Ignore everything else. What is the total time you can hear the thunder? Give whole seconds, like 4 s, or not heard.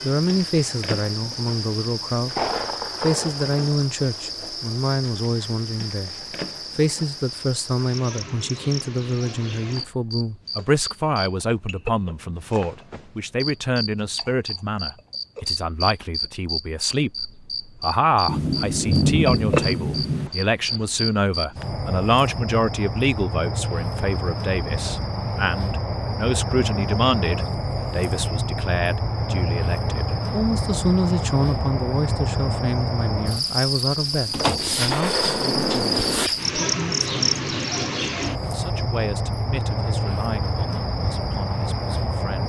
6 s.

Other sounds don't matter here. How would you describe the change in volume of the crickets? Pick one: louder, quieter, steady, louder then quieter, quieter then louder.
louder.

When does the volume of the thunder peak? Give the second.
19 s.